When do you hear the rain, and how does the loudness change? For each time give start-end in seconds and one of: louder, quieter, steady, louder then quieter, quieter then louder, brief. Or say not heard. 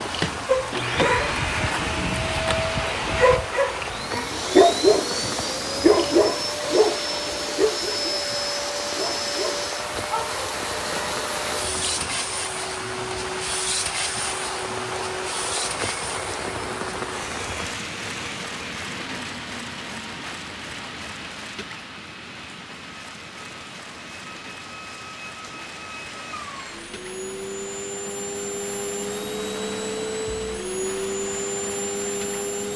0.0-32.7 quieter.